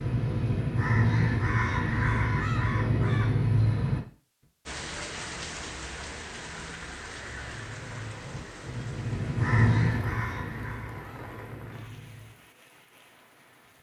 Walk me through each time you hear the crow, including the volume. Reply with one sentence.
The crow can be heard from 0.0 to 4.0 s, at a steady volume; and from 7.2 to 12.4 s, getting louder then quieter.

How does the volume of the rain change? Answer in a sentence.
The volume of the rain goes down.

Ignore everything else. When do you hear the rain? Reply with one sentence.
The rain can be heard from 4.7 to 13.7 s.